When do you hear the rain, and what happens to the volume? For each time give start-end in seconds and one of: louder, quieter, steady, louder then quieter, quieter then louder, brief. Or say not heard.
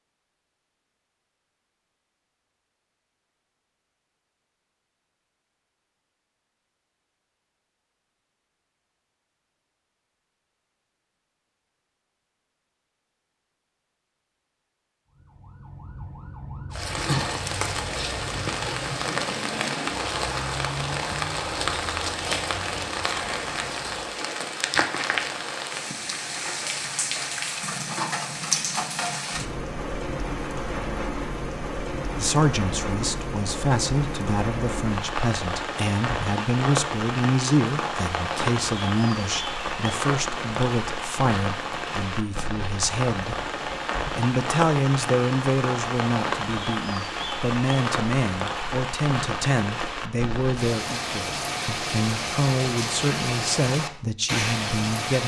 16.7-55.2 steady.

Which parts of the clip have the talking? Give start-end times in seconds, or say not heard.
32.1-43.5, 44.1-55.2.